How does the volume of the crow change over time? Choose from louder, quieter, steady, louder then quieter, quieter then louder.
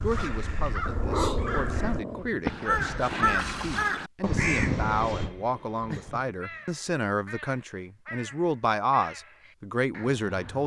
louder then quieter.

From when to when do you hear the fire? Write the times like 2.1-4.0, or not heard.
not heard.